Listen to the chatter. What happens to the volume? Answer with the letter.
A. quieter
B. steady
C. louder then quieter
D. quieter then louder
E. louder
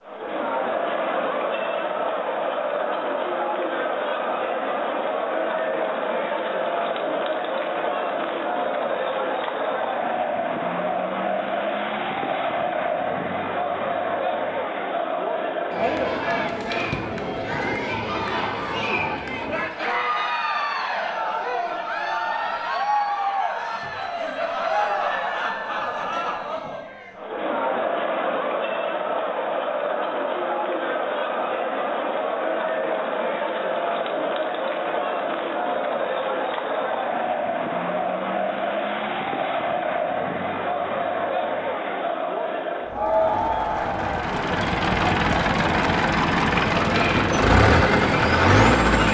B.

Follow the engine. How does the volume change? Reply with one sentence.
The loudness of the engine goes up.